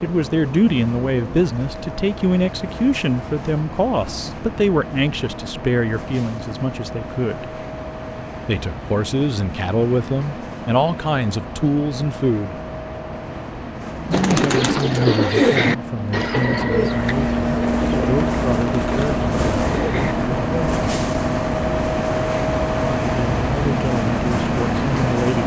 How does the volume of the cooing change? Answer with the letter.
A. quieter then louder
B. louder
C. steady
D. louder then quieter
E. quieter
E.